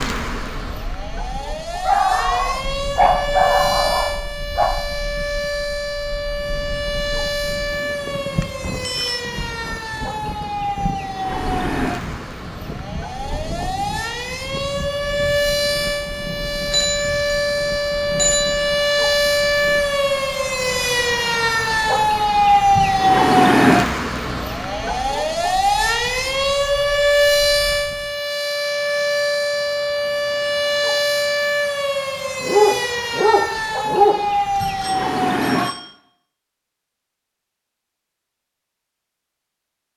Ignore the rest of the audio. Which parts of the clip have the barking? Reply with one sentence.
The barking can be heard from 1.8 to 4.8 s and from 32.4 to 34.2 s.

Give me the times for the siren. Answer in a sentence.
The siren can be heard from 0.0 to 35.8 s.